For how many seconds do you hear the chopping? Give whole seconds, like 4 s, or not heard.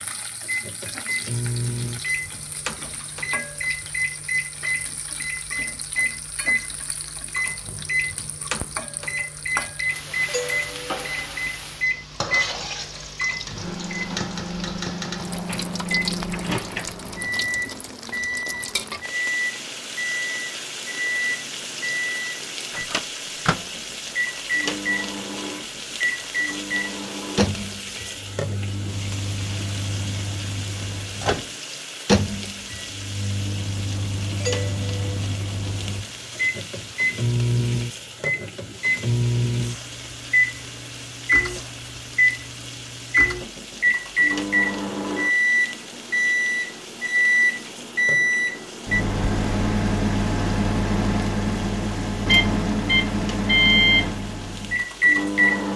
not heard.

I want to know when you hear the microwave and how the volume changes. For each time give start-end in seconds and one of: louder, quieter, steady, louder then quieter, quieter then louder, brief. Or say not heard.
0.0-55.7 louder.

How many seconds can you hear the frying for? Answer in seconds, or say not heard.
56 s.